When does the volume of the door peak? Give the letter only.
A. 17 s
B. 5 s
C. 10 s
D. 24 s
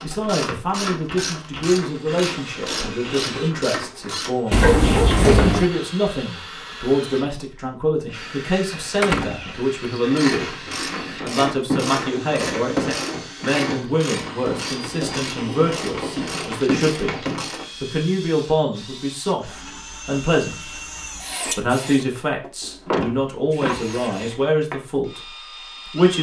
B.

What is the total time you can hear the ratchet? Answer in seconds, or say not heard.
12 s.